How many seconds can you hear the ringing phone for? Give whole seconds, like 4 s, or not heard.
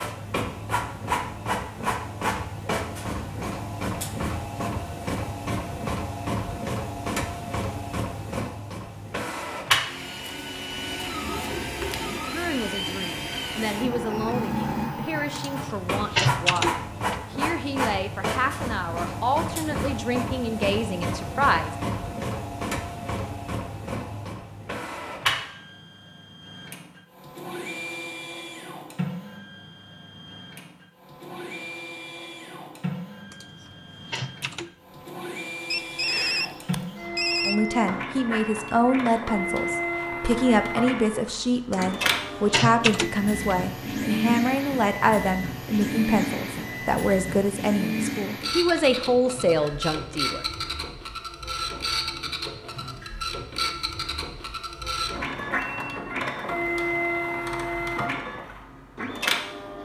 2 s.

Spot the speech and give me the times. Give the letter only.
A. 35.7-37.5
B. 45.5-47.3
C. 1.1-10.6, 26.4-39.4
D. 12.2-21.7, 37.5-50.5
D.